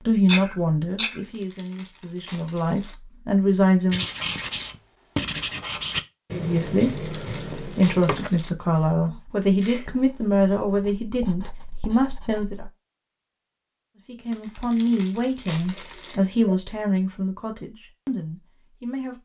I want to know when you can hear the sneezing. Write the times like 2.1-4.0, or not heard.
0.2-1.2, 9.0-9.9, 15.7-16.6.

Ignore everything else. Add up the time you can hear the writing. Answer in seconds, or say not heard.
9 s.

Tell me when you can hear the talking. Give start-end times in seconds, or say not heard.
0.1-4.0, 6.3-12.7, 14.1-19.1.